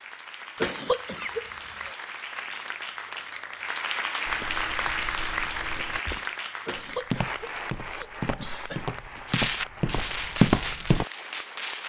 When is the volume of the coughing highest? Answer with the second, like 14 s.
1 s.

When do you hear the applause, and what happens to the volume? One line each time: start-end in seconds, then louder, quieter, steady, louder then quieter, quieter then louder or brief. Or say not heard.
0.0-11.8 louder then quieter.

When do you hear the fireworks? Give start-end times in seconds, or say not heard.
9.2-11.8.